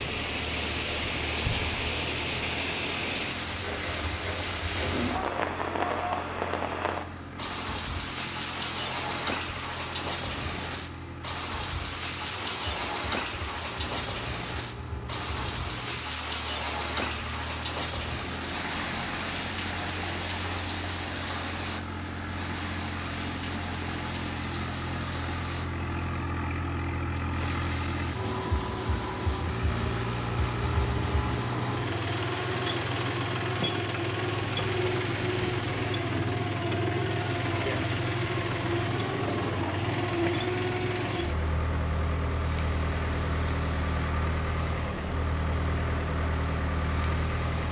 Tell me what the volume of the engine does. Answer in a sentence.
The loudness of the engine goes up.